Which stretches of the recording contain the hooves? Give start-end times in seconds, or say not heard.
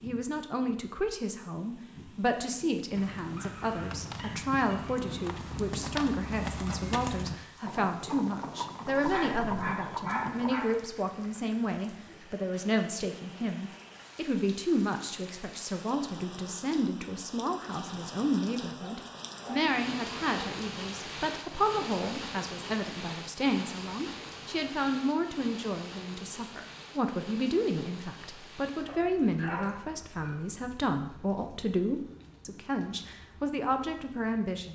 3.0-10.6.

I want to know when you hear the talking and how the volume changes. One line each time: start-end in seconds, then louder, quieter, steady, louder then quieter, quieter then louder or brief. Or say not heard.
0.0-34.7 steady.